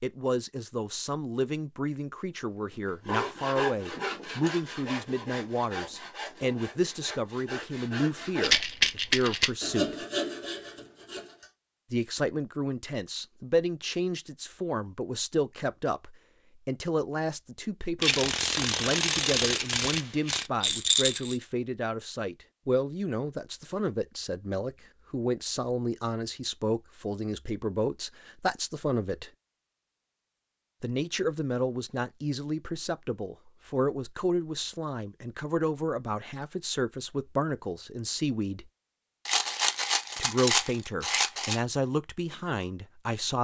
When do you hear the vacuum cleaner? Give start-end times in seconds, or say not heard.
not heard.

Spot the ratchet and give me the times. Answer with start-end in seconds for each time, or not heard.
18.0-20.5.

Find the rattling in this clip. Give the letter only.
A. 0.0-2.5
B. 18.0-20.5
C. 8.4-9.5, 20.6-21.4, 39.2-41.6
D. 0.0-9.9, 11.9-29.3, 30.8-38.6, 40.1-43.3
C.